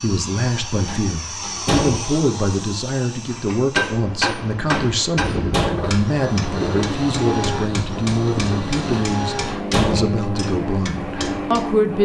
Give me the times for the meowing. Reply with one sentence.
The meowing can't be heard in this clip.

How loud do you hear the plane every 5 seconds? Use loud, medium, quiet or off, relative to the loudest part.
medium, loud, loud.